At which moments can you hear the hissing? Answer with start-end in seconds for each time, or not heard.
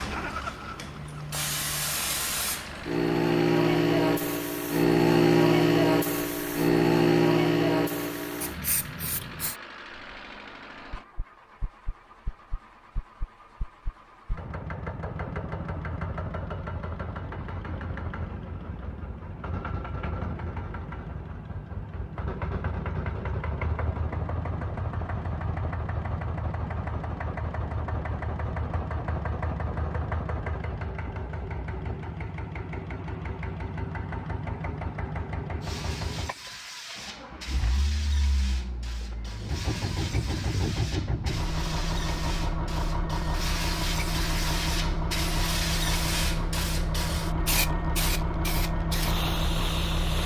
0.0-9.6, 35.6-50.2.